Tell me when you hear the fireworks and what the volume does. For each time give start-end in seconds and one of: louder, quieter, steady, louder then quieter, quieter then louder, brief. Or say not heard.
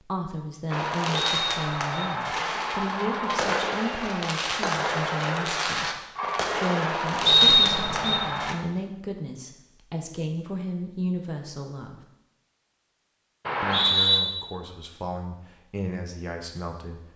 0.7-8.6 steady.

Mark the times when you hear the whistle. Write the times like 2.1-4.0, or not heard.
1.2-2.1, 7.2-8.2, 13.4-14.2.